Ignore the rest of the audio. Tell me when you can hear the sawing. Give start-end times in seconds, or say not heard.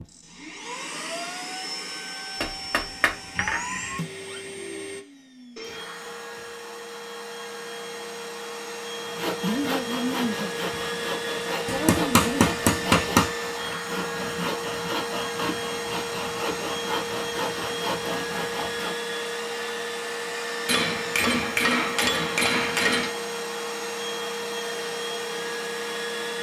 9.0-18.9.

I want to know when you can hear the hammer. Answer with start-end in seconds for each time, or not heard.
2.4-3.6, 11.7-13.3, 20.6-23.1.